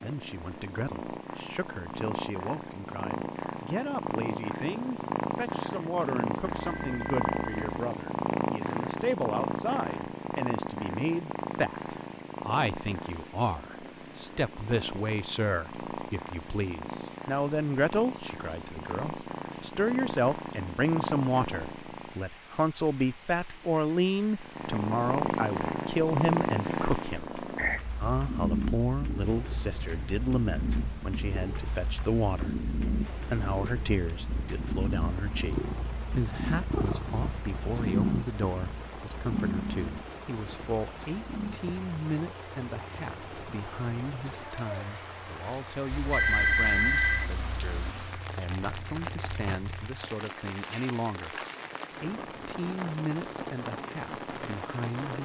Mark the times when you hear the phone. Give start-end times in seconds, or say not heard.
6.6-7.7, 45.9-47.9.